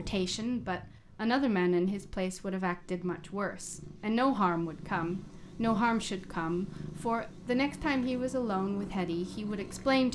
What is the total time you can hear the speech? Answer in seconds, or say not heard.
10 s.